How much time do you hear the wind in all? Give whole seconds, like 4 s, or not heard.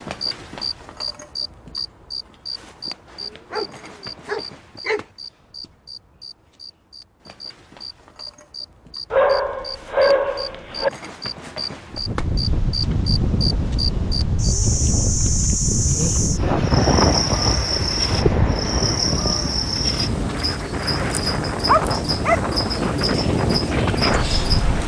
13 s.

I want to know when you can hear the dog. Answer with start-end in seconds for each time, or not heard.
3.2-5.0, 9.1-10.9, 21.6-22.4.